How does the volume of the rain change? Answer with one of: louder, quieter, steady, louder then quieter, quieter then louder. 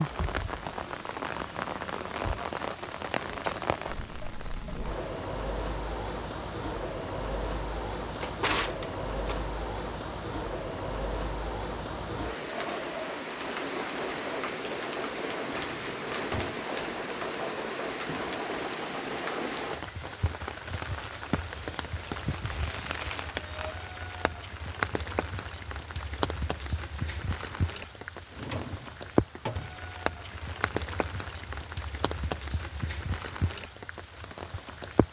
steady.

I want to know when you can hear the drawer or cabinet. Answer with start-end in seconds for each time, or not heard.
8.1-9.3, 15.5-16.6, 28.3-29.8.